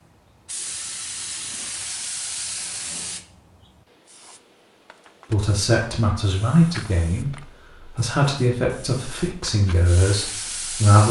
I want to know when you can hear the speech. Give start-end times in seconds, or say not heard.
5.3-11.0.